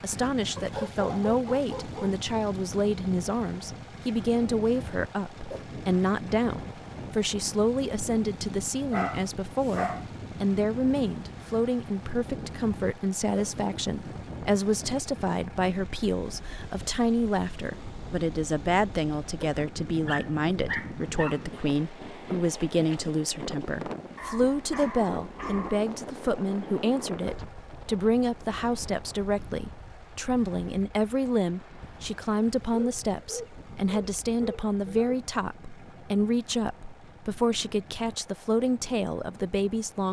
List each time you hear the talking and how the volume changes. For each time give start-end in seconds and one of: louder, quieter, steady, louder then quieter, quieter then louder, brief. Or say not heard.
0.0-40.0 steady.